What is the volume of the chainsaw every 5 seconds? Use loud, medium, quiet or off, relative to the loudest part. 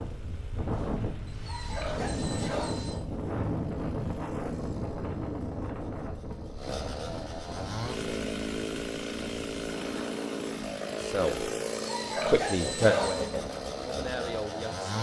quiet, loud, loud.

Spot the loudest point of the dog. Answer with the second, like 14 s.
13 s.